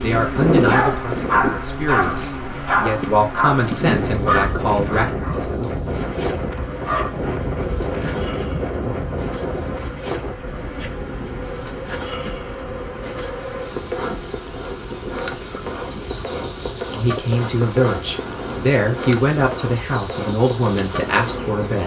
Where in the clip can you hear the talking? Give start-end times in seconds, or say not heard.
0.0-5.1, 16.9-21.8.